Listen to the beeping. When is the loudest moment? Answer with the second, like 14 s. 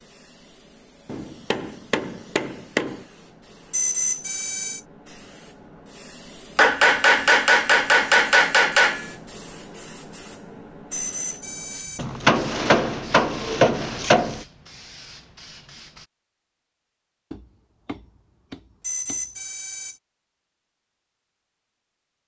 4 s.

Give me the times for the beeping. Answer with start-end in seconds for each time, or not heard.
3.7-4.8, 10.9-12.1, 18.8-20.0.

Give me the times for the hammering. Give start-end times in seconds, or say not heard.
1.1-3.0, 6.5-9.1, 11.9-14.4, 17.3-19.2.